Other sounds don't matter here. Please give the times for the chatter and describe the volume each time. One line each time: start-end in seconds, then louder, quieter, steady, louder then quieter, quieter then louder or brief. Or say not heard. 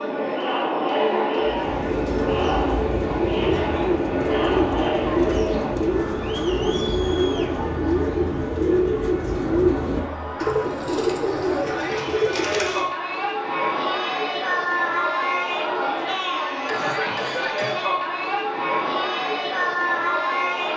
0.0-20.7 quieter then louder.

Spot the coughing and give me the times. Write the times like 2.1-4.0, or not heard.
16.6-17.8.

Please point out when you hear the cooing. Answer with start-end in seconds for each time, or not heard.
1.4-12.8.